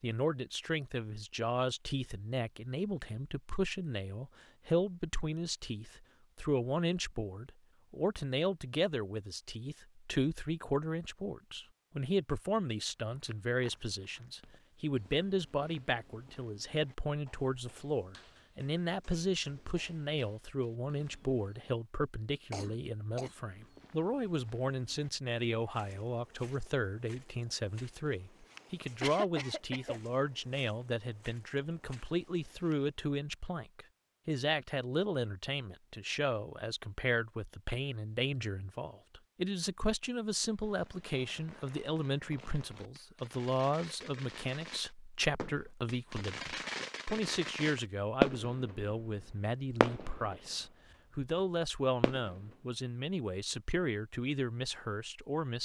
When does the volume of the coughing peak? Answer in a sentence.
The volume of the coughing peaks at 29 seconds.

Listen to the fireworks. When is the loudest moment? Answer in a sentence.
The volume of the fireworks peaks at 48 seconds.